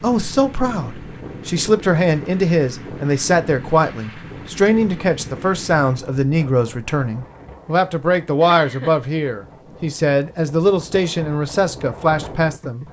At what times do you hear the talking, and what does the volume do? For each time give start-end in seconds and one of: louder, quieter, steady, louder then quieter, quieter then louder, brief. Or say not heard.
0.0-12.8 steady.